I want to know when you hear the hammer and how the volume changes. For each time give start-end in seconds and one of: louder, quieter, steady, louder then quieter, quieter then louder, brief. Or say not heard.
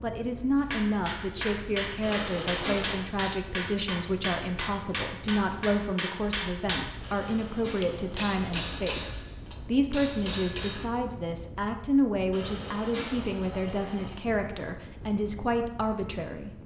0.6-10.9 steady.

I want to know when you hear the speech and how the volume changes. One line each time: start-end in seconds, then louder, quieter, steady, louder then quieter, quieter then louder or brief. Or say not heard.
0.0-16.5 steady.